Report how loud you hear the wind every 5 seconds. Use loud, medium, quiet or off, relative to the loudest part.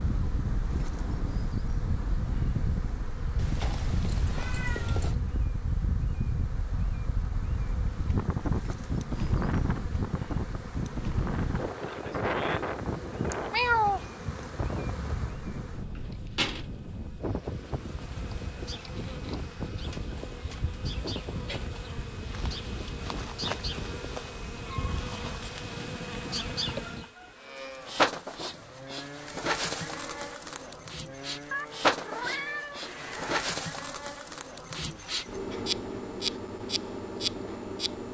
loud, loud, loud, medium, medium, medium, off, off.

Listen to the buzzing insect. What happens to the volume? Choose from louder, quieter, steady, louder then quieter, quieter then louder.
louder.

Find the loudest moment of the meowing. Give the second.
14 s.